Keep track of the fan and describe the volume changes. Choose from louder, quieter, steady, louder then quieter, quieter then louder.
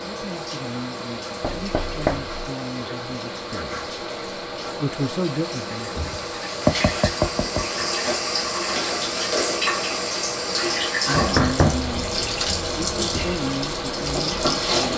steady.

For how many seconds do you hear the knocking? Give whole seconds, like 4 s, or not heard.
3 s.